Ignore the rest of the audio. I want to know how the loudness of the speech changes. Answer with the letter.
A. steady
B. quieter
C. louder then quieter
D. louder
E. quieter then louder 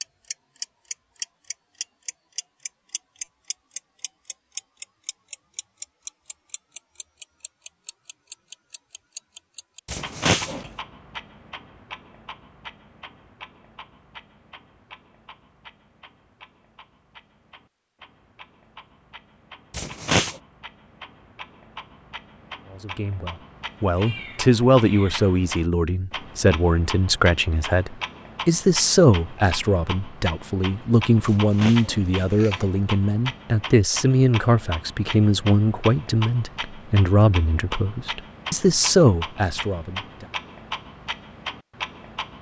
A.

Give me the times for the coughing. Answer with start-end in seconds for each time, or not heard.
9.8-10.7, 19.7-20.4, 31.2-32.7.